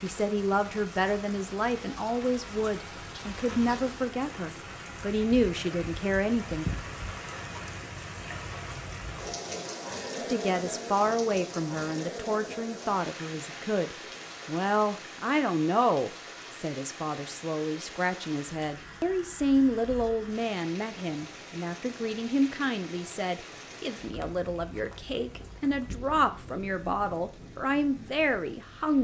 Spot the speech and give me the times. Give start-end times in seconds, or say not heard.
0.0-6.7, 10.2-28.9.